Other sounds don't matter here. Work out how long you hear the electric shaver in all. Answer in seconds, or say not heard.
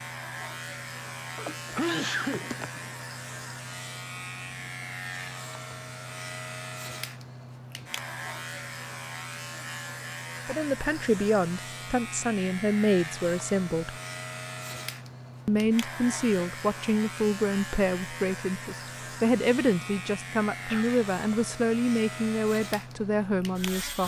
24 s.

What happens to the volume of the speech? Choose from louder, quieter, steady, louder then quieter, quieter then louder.
steady.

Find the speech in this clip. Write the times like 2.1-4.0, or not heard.
10.4-13.9, 15.4-24.0.